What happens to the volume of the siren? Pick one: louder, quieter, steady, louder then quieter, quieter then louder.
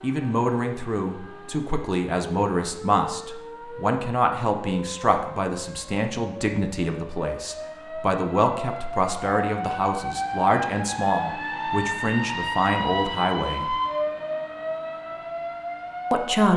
louder.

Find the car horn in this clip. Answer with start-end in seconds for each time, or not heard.
not heard.